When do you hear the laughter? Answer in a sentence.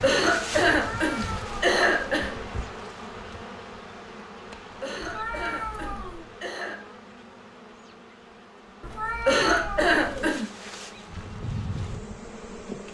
The laughter can be heard from 0.0 to 2.3 s, from 4.8 to 6.8 s and from 9.2 to 10.4 s.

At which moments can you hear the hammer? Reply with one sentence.
The hammer can't be heard in this clip.